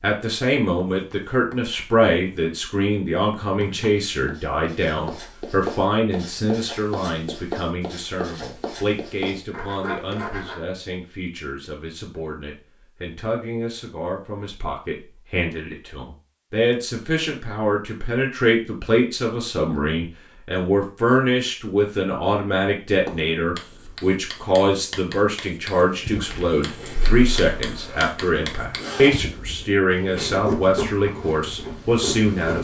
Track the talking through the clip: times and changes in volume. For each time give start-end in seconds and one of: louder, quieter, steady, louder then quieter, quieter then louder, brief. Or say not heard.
0.0-32.6 quieter then louder.